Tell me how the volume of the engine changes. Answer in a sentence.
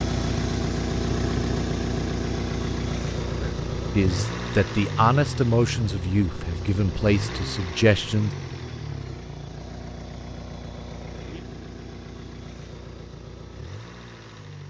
The loudness of the engine goes down.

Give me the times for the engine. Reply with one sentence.
You can hear the engine from 0.0 to 14.6 s.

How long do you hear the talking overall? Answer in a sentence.
You can hear the talking for 5 seconds altogether.